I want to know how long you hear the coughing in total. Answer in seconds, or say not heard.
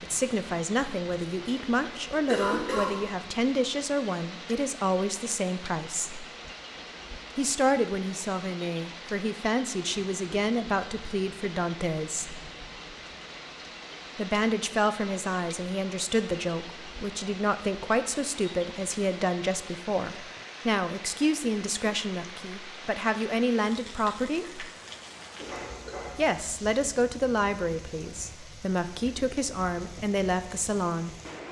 3 s.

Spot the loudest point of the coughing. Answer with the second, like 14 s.
2 s.